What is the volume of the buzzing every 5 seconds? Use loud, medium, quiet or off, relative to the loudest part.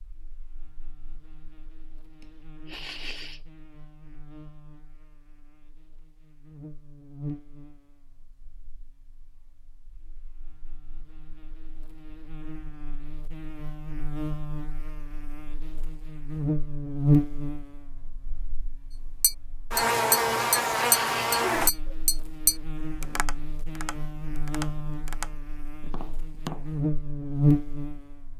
quiet, quiet, quiet, loud, loud, loud.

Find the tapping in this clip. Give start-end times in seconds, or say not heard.
19.2-26.9.